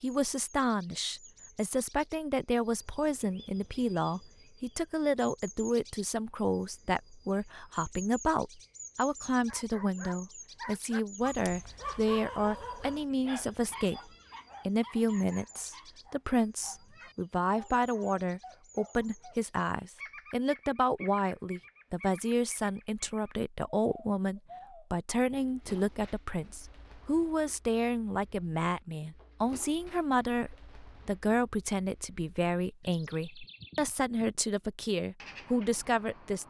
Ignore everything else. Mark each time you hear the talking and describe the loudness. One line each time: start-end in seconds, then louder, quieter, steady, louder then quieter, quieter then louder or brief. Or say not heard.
0.0-36.4 steady.